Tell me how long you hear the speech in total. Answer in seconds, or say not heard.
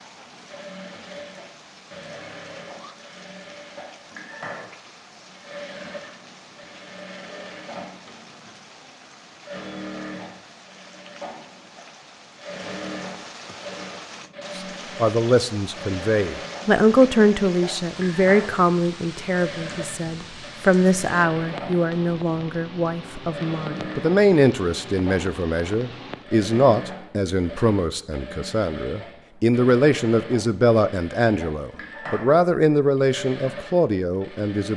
20 s.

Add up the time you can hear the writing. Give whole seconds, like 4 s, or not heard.
not heard.